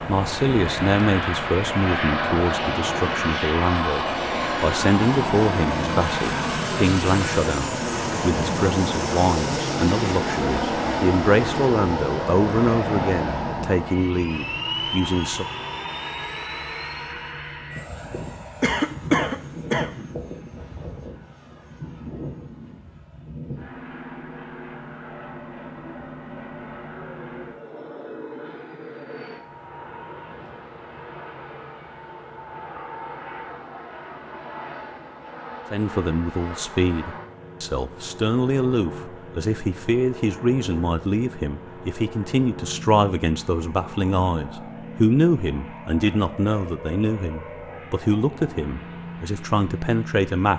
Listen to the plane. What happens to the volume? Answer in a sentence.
The loudness of the plane goes down.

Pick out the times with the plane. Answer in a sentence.
You can hear the plane from 0.0 to 50.5 s.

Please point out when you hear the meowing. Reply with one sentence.
You can't hear the meowing here.